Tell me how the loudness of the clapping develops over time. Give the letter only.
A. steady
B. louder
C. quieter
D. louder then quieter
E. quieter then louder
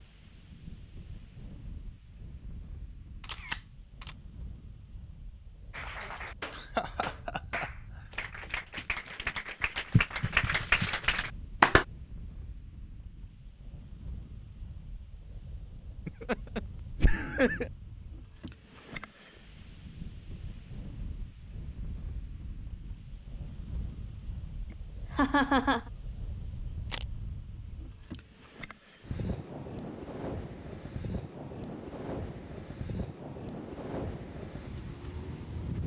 B.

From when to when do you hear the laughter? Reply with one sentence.
The laughter can be heard from 6.5 to 7.7 s, from 16.1 to 17.7 s and from 25.1 to 25.8 s.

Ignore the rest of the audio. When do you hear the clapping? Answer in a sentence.
The clapping can be heard from 5.7 to 11.8 s.